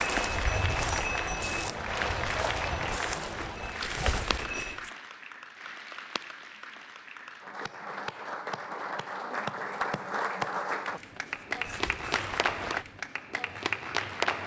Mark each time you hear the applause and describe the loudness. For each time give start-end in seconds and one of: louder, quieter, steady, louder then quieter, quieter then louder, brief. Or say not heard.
0.0-14.4 quieter then louder.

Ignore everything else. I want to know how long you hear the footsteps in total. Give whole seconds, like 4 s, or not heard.
7 s.